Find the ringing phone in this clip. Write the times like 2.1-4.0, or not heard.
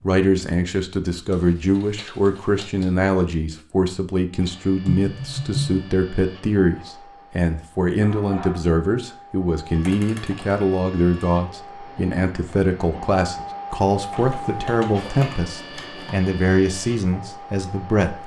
not heard.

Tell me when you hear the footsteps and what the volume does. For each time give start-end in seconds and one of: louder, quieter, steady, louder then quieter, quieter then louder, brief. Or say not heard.
not heard.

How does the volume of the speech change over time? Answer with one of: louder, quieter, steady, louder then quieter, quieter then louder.
steady.